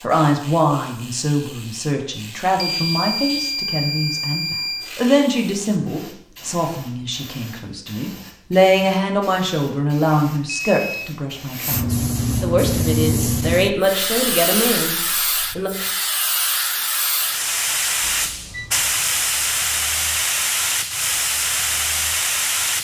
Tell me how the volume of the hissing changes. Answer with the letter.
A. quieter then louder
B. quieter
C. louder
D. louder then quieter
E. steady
C.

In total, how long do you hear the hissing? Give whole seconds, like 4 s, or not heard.
23 s.